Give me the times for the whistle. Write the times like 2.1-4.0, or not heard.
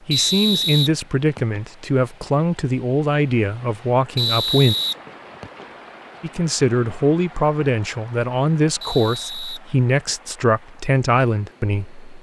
0.1-1.6, 4.2-5.7, 8.8-10.3.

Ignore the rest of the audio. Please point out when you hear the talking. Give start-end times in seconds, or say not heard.
0.1-4.8, 6.2-12.0.